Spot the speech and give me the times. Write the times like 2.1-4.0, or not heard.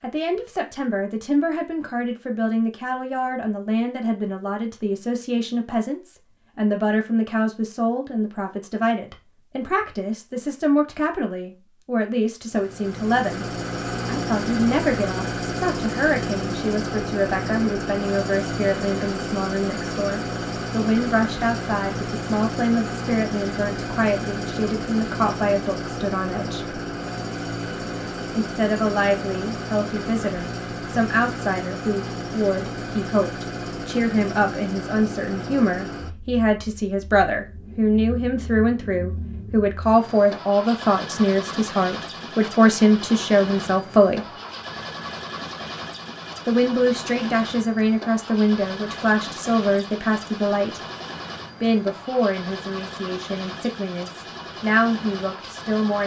0.0-13.4, 14.1-26.8, 28.4-44.2, 46.5-50.8, 51.6-56.0.